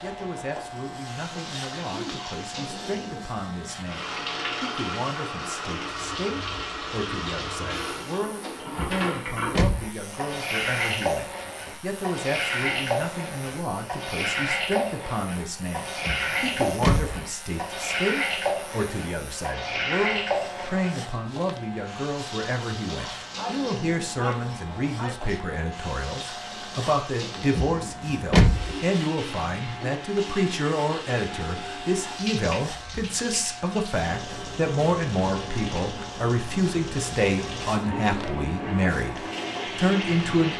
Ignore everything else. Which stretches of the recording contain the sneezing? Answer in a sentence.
You can hear the sneezing from 1.3 to 2.2 s and from 23.4 to 25.4 s.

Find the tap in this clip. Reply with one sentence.
You can hear the tap from 0.0 to 40.5 s.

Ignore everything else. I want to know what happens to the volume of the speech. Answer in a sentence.
The loudness of the speech goes up.